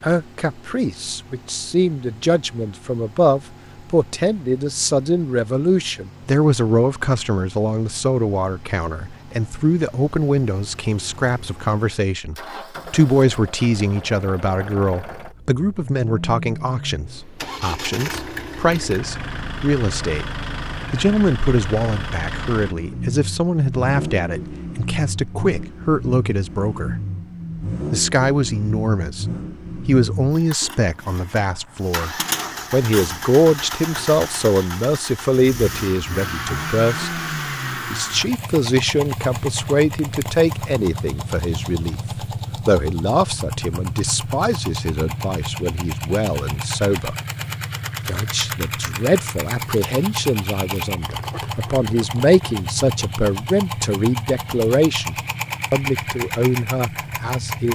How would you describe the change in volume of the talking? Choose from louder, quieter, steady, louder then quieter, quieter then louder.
steady.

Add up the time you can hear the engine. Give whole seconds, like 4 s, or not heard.
58 s.